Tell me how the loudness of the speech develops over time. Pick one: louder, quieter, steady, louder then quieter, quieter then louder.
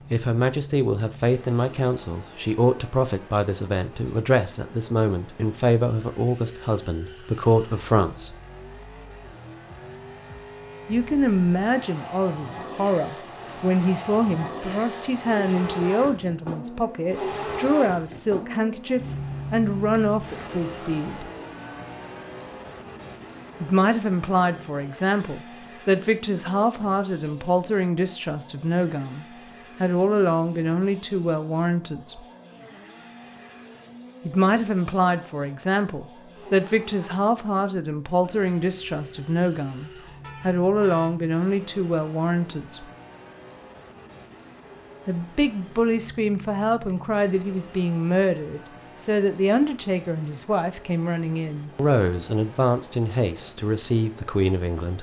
steady.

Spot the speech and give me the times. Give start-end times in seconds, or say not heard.
0.1-8.3, 10.8-21.3, 23.6-32.2, 34.2-42.9, 45.0-54.9.